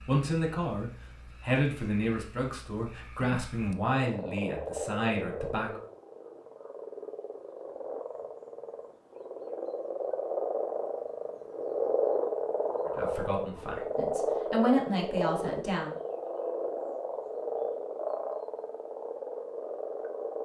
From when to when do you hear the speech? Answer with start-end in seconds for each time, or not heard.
0.1-5.8, 12.8-15.9.